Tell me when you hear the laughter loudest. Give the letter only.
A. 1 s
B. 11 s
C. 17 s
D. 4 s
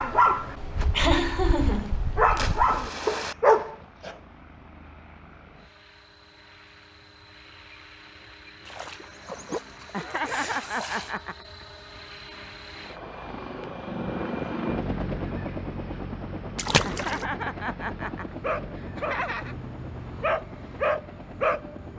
A.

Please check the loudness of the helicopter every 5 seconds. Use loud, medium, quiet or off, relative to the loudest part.
quiet, quiet, loud, loud, medium.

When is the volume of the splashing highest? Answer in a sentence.
The volume of the splashing peaks at 17 seconds.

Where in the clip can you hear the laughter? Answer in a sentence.
You can hear the laughter from 0.9 to 1.9 s, from 9.9 to 11.7 s and from 16.9 to 19.6 s.